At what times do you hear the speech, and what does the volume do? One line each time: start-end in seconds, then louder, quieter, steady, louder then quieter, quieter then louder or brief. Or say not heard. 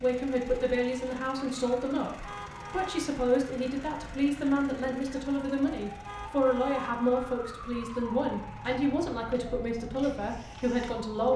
0.0-11.3 steady.